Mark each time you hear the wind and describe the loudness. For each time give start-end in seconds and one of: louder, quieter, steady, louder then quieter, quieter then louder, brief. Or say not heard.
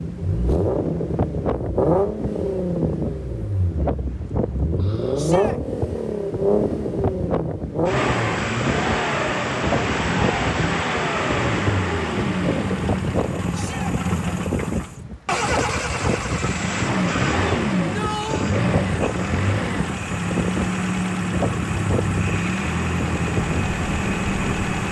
0.0-24.8 steady.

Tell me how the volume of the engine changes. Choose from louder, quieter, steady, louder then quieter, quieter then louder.
steady.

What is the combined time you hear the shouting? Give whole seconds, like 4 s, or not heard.
2 s.